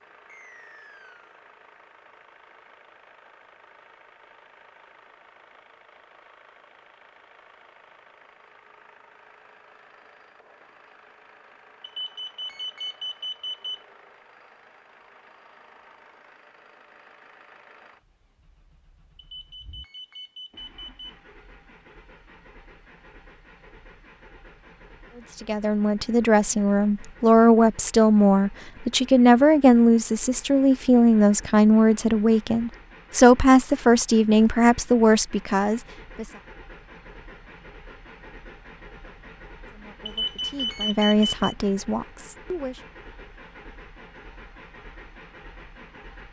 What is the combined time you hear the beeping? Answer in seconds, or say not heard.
5 s.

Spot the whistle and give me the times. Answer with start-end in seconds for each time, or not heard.
0.2-1.3.